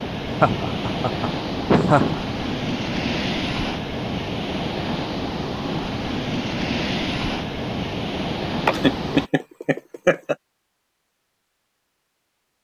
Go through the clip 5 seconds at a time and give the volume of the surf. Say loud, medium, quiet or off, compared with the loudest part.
loud, loud, off.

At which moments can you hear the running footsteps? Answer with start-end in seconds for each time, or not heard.
not heard.